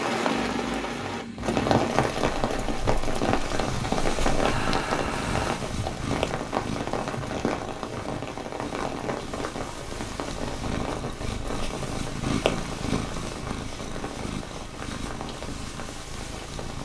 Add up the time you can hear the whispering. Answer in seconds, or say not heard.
not heard.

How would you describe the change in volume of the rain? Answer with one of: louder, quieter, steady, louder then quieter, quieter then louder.
quieter.